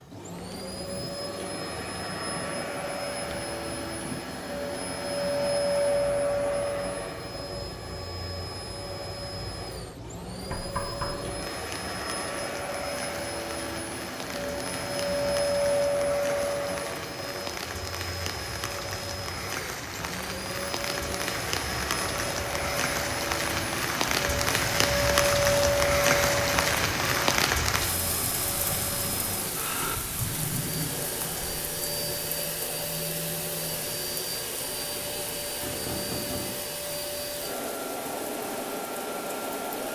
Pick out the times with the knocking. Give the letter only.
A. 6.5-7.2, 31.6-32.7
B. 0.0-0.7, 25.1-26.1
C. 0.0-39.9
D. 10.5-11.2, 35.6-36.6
D.